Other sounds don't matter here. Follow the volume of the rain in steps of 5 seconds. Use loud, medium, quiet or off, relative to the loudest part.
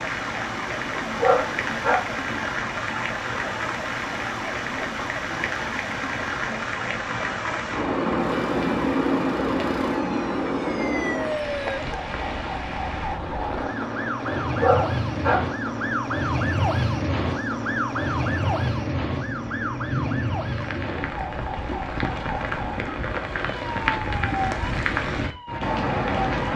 loud, loud, loud, medium, loud, loud.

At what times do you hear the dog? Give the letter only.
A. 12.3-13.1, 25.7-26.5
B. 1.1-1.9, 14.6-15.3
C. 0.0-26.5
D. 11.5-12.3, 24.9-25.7
B.